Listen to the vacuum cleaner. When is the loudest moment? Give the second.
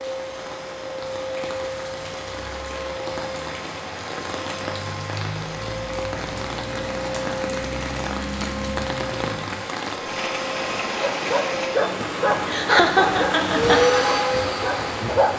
14 s.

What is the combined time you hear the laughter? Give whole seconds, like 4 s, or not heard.
2 s.